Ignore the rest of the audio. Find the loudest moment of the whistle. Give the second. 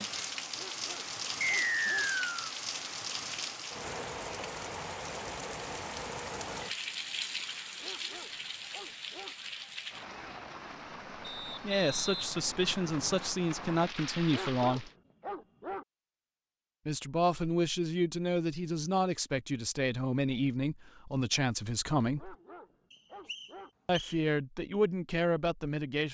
2 s.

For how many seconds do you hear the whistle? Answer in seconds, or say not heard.
4 s.